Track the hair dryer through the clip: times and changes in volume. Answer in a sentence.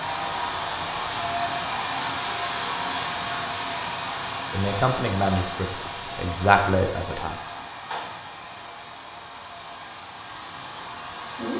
You can hear the hair dryer from 0.0 to 11.5 s, getting quieter.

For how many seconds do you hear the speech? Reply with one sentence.
The speech can be heard for 3 seconds in total.